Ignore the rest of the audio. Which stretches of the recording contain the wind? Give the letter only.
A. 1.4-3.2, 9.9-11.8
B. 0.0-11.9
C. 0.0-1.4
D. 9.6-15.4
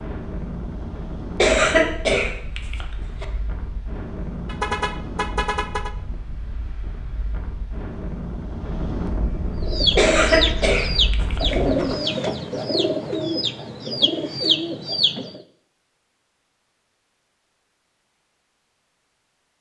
B.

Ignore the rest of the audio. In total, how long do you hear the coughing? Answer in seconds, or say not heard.
4 s.